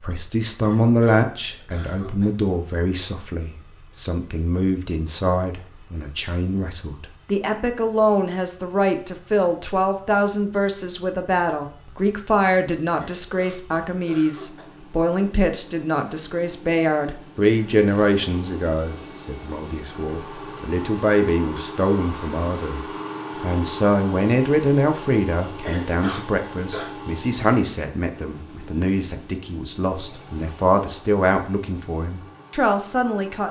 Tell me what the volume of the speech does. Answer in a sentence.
The volume of the speech stays about the same.